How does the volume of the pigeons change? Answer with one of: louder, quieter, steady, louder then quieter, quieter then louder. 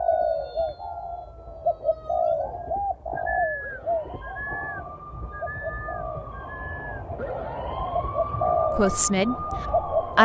quieter then louder.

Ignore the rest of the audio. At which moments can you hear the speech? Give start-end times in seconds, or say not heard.
8.8-10.1.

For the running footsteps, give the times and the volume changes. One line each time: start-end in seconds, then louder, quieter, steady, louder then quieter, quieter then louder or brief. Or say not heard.
not heard.